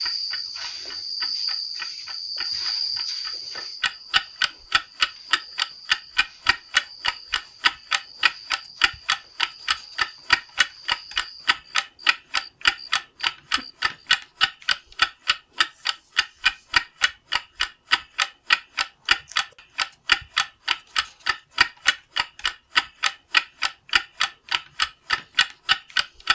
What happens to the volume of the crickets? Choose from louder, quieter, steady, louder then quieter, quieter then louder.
quieter.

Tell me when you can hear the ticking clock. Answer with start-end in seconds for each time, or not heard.
0.0-26.3.